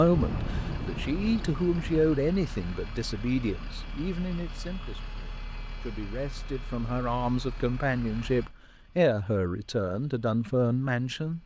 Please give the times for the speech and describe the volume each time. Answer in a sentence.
The speech can be heard from 0.0 to 11.4 s, getting quieter then louder.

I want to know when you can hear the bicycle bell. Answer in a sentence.
You can't hear the bicycle bell here.